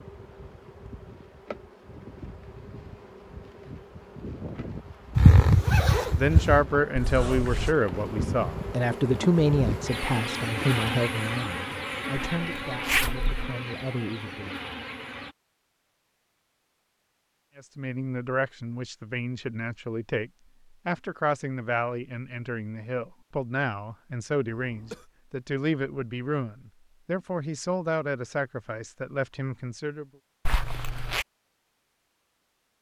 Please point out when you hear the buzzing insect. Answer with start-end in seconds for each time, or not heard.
0.0-15.3.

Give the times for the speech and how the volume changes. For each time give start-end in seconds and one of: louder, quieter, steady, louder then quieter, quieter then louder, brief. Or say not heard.
6.2-14.6 quieter
17.6-30.1 steady.